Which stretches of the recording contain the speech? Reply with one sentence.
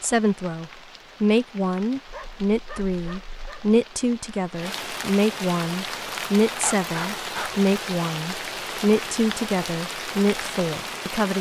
The speech can be heard from 0.0 to 11.3 s.